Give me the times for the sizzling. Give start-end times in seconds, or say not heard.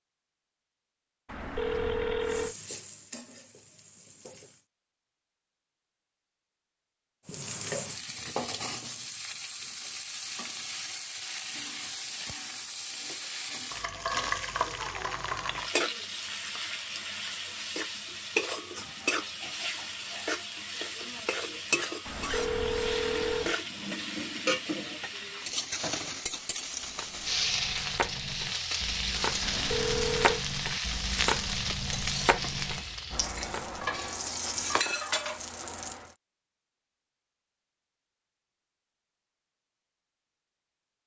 2.2-4.7, 7.2-36.1.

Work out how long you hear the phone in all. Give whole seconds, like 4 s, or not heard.
4 s.